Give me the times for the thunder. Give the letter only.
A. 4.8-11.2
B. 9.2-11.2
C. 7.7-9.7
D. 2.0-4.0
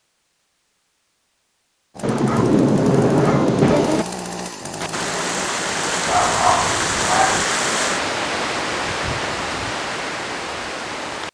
D.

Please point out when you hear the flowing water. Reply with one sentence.
The flowing water can be heard from 4.8 to 11.2 s.